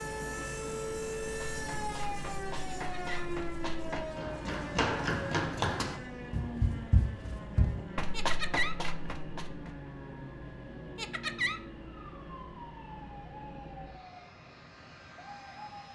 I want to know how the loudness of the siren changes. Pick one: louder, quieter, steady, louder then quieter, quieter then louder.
quieter.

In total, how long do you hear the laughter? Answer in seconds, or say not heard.
2 s.